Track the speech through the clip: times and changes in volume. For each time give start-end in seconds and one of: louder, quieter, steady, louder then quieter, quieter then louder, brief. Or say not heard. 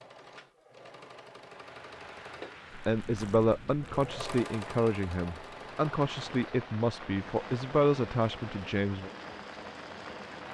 2.9-9.1 steady.